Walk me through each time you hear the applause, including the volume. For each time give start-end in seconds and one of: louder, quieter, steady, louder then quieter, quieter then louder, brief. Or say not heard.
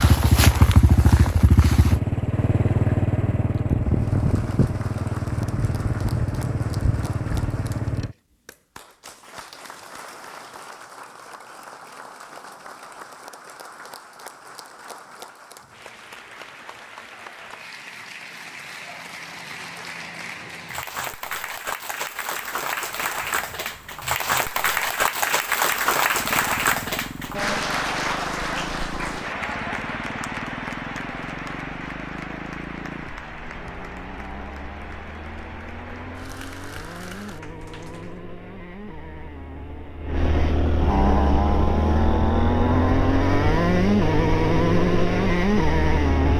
3.8-38.2 louder then quieter.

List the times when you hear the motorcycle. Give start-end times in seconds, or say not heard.
0.0-8.2, 26.1-46.3.